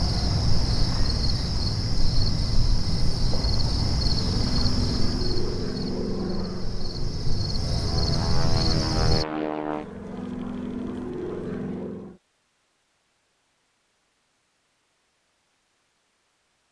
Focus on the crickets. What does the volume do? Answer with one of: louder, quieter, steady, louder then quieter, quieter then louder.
quieter then louder.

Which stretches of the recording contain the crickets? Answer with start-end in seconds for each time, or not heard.
0.0-9.2.